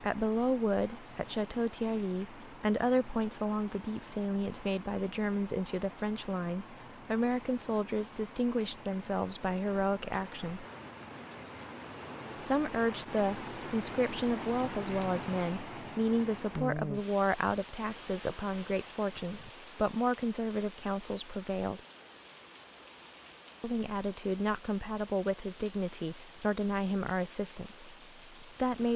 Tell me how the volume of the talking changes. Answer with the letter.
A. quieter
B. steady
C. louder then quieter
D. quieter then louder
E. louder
B.